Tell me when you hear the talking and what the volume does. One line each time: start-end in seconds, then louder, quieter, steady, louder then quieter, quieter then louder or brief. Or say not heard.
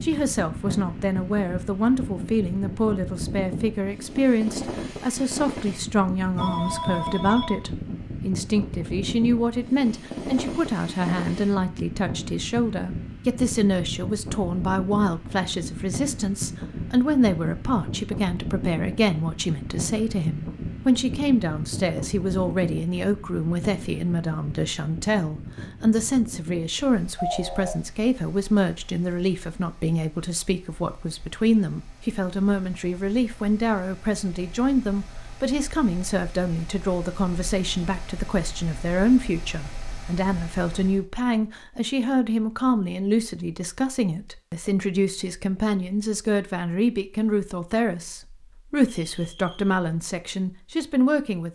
0.0-51.5 steady.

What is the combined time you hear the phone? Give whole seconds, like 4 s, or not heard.
3 s.